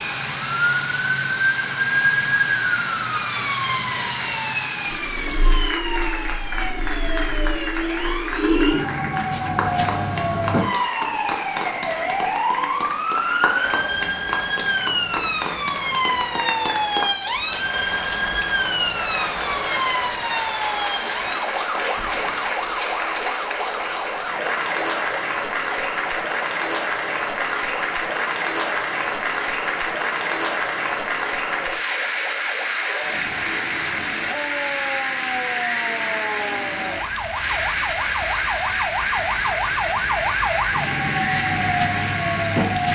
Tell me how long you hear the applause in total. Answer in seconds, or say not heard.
43 s.